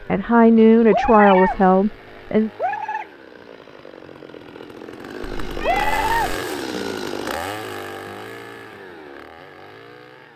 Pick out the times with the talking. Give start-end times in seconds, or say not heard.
0.0-2.5.